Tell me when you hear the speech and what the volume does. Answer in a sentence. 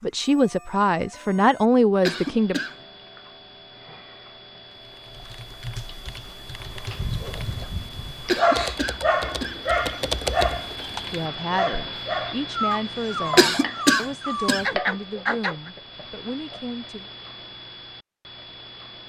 You can hear the speech briefly from 0.0 to 2.6 s; and from 11.1 to 17.1 s, getting quieter.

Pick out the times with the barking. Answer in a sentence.
The barking can be heard from 6.9 to 15.7 s.